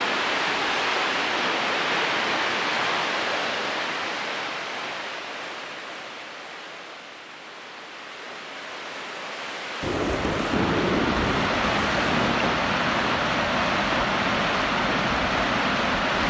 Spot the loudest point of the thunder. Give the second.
11 s.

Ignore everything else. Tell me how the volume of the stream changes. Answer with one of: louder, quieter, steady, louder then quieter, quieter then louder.
quieter then louder.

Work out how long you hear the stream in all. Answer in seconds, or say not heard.
16 s.